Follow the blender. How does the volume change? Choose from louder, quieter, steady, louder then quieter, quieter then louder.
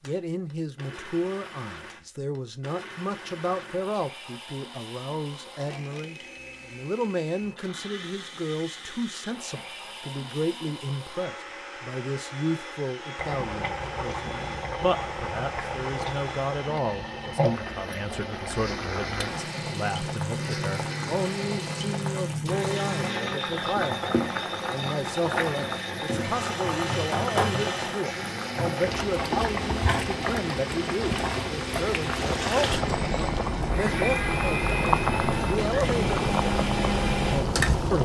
louder.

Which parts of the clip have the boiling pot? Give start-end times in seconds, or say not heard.
13.2-37.9.